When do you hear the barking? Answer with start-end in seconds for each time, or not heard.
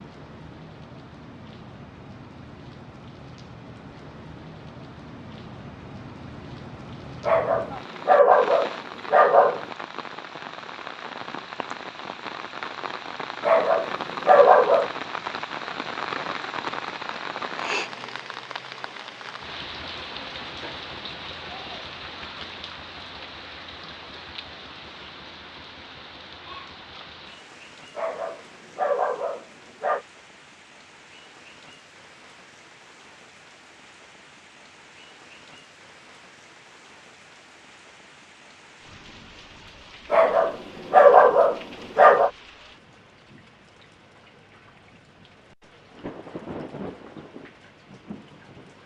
7.2-9.7, 13.4-14.9, 27.9-30.1, 40.1-42.3.